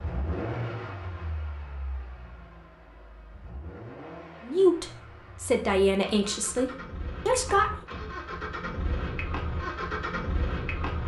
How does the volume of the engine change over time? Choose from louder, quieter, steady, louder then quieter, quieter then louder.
quieter then louder.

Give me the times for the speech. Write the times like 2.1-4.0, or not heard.
4.4-7.8.